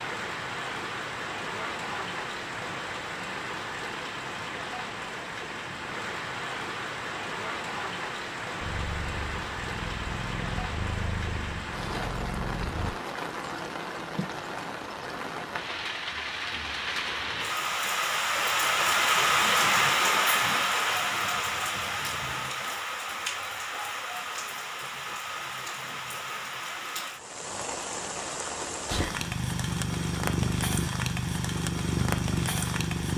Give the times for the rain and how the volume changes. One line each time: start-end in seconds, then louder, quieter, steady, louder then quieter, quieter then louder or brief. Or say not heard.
0.0-33.1 louder then quieter.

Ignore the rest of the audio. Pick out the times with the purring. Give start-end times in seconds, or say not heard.
8.6-12.9, 28.9-33.1.